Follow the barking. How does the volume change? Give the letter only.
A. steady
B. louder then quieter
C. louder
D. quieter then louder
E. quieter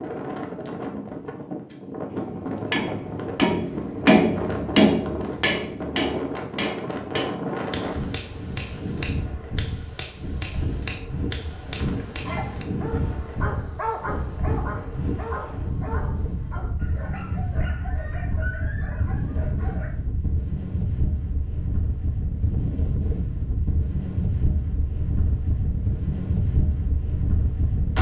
E.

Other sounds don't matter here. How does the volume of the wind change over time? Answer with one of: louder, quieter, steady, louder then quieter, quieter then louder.
steady.